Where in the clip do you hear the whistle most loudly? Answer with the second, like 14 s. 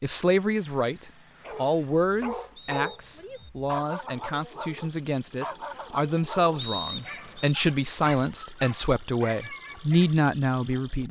7 s.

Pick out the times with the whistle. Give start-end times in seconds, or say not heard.
2.5-3.5, 6.5-7.5.